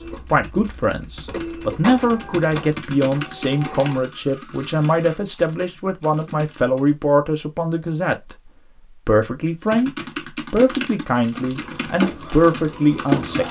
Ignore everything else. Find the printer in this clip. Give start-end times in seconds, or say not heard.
0.0-5.2, 11.4-13.4.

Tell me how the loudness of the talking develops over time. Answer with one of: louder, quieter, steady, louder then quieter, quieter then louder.
steady.